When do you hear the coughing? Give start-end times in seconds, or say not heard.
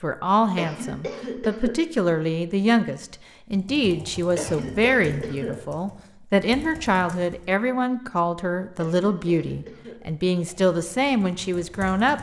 0.6-1.8, 4.3-5.5, 8.8-9.9.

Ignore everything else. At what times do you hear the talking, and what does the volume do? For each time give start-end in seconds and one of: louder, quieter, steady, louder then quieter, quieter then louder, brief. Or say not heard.
0.0-12.1 steady.